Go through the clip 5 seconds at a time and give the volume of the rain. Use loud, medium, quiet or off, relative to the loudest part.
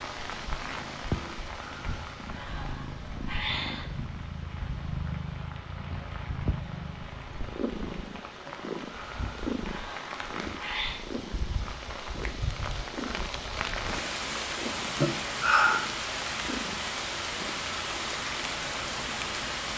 medium, medium, loud, loud.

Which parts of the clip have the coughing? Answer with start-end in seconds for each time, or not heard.
not heard.